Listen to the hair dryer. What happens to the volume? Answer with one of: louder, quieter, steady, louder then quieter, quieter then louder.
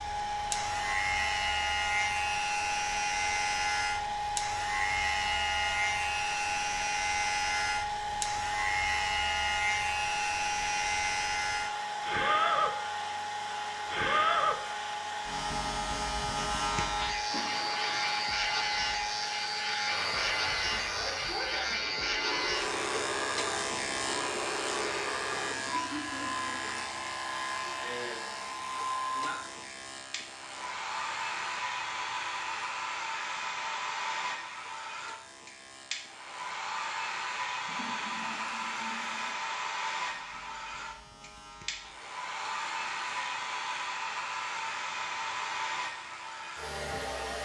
steady.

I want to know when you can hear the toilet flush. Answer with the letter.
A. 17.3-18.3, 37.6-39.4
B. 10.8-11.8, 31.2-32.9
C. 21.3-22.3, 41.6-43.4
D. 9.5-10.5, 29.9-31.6
A.